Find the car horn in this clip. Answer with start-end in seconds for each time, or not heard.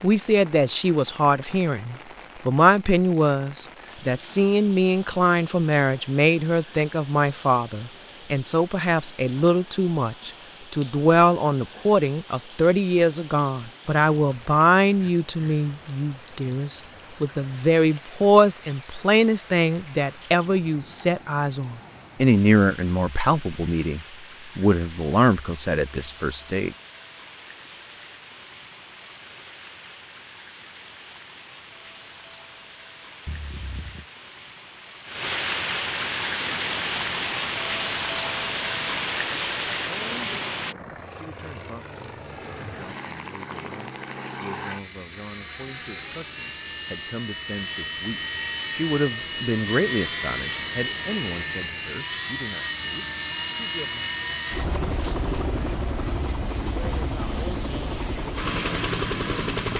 33.2-34.0.